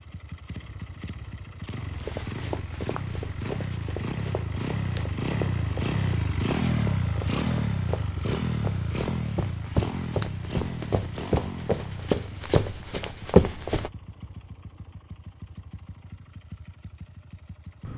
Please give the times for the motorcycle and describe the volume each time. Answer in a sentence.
You can hear the motorcycle from 0.0 to 17.9 s, getting louder then quieter.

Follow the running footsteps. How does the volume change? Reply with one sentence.
The loudness of the running footsteps goes up.